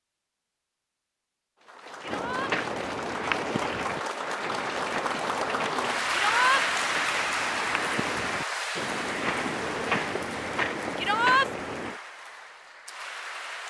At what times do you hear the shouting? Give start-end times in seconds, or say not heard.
2.0-2.5, 6.1-6.7, 10.9-11.5.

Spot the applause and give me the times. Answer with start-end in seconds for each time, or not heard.
1.6-13.6.